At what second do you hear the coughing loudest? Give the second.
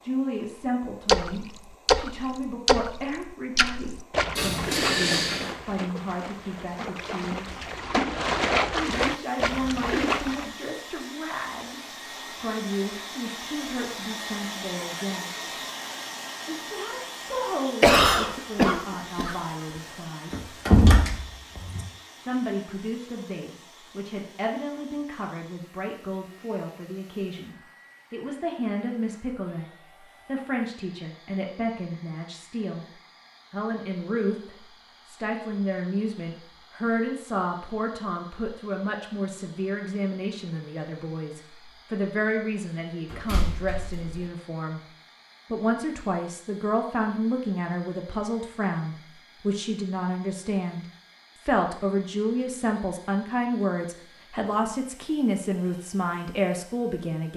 18 s.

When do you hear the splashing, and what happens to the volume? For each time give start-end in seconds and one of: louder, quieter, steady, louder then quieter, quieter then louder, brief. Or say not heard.
1.1-10.5 quieter then louder.